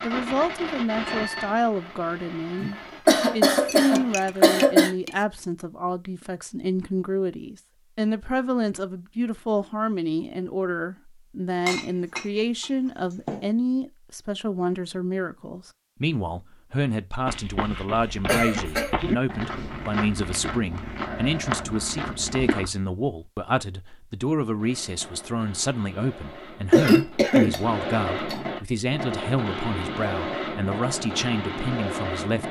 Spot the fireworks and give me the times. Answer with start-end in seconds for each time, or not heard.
0.0-4.5, 24.6-32.4.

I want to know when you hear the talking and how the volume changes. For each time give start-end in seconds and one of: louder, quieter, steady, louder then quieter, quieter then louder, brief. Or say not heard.
0.0-32.4 steady.